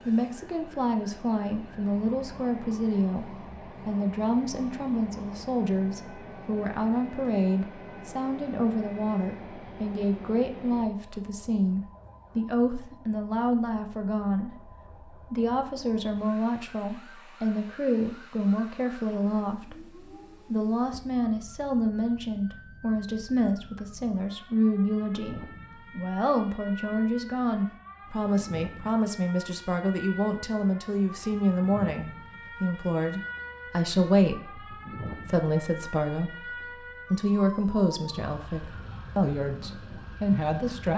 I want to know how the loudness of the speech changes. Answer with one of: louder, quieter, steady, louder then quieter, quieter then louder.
steady.